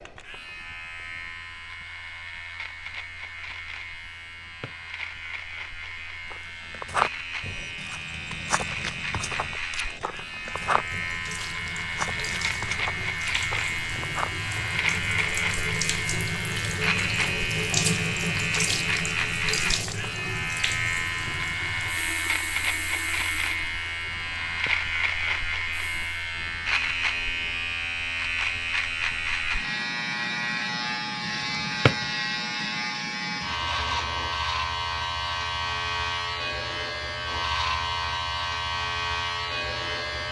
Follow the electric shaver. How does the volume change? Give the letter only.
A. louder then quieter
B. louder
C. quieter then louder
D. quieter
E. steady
B.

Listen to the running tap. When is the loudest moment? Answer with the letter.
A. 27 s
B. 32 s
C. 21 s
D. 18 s
D.